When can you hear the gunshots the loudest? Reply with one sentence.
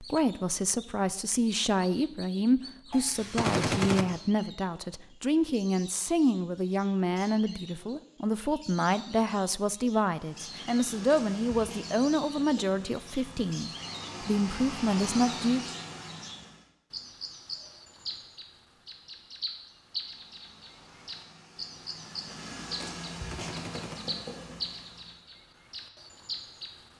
The volume of the gunshots peaks at 4 seconds.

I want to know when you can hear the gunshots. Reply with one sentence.
You can hear the gunshots from 2.9 to 4.0 s and from 23.1 to 23.9 s.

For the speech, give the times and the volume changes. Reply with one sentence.
The speech can be heard from 0.0 to 15.7 s, at a steady volume.